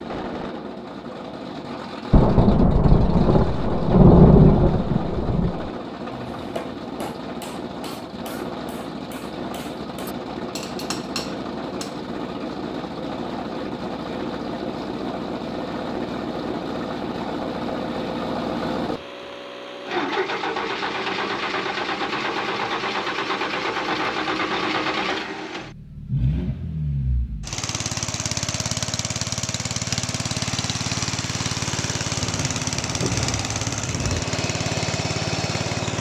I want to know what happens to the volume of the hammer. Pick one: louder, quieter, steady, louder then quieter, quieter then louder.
quieter then louder.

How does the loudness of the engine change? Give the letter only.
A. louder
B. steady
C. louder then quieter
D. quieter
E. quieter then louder
A.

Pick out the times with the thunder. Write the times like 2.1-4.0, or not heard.
2.1-5.7, 32.2-34.2.